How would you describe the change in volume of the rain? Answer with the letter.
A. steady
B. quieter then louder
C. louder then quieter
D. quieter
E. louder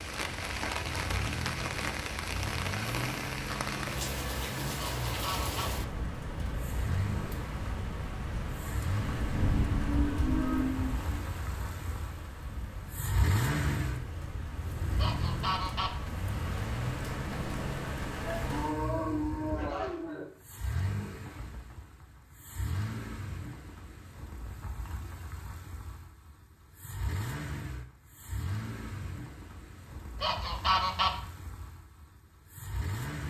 B.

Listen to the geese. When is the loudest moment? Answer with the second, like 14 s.
31 s.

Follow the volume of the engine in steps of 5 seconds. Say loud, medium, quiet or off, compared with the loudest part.
loud, loud, loud, loud, medium, medium, medium.